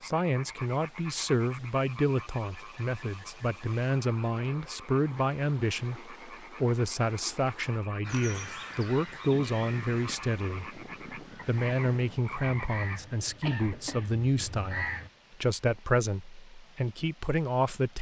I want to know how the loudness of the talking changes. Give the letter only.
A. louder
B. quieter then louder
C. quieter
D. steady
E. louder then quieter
D.